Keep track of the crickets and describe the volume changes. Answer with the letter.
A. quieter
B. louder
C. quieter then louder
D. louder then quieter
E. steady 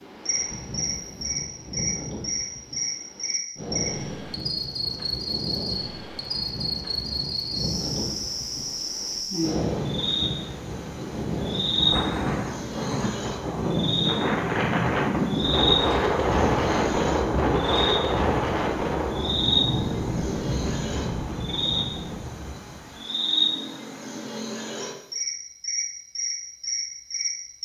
E.